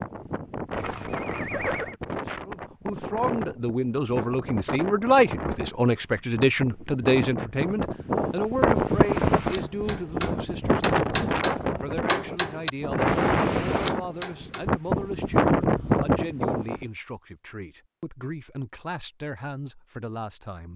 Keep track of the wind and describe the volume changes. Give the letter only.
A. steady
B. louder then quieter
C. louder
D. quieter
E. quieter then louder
C.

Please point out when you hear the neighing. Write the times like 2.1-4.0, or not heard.
0.7-1.9.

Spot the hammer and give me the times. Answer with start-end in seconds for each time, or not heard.
8.8-14.7.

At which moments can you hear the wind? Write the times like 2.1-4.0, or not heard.
0.0-16.9.